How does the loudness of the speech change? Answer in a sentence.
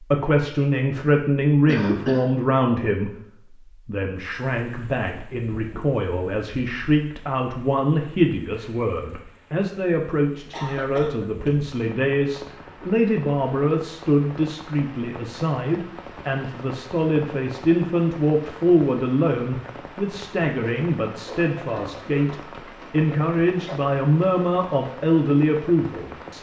The volume of the speech stays about the same.